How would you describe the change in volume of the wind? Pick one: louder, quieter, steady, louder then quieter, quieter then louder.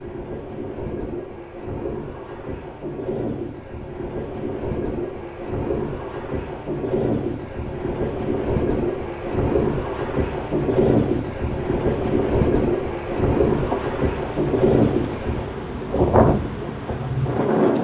louder.